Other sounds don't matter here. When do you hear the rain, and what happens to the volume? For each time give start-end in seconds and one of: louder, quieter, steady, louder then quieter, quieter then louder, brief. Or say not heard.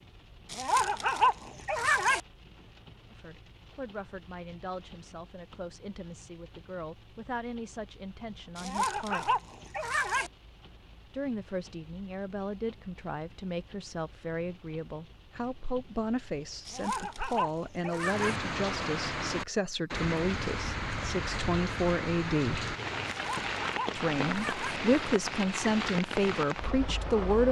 0.0-27.4 louder.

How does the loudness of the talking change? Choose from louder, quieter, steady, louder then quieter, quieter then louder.
louder.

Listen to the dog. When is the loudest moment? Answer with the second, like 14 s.
1 s.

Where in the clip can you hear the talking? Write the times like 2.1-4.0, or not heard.
3.1-9.4, 11.1-22.6, 23.9-27.4.